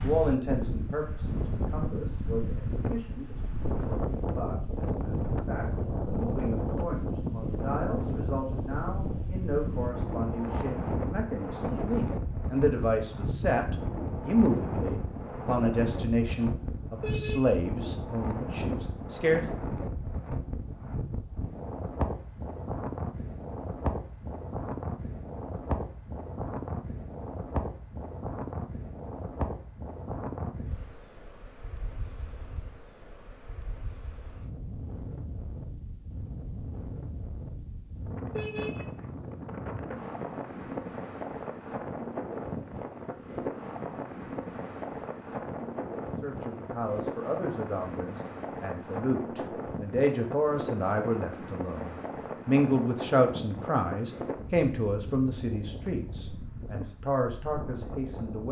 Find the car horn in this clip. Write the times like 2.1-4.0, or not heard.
16.9-17.6, 38.3-38.9.